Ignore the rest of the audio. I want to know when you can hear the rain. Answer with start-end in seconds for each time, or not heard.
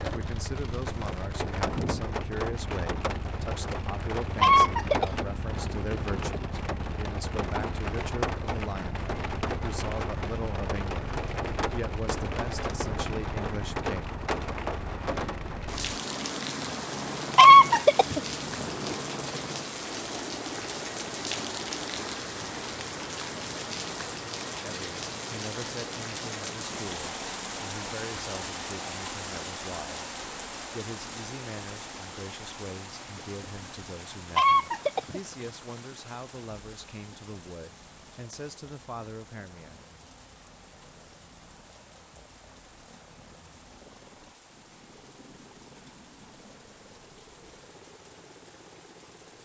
0.0-49.4.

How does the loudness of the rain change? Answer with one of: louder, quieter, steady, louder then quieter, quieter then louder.
quieter.